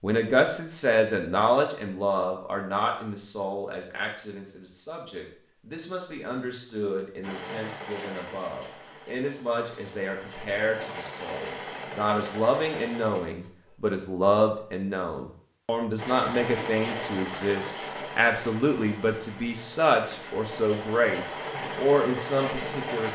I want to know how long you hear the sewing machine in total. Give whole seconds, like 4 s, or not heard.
13 s.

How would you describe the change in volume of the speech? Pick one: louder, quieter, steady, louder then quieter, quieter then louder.
quieter then louder.